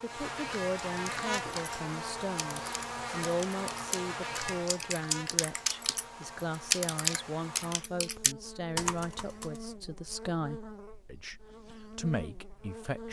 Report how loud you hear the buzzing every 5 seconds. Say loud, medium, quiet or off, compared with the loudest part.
loud, medium, medium.